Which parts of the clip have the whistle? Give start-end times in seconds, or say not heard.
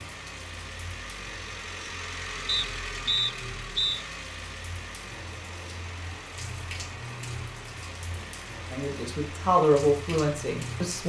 2.5-4.0.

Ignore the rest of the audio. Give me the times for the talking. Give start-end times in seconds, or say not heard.
8.7-11.0.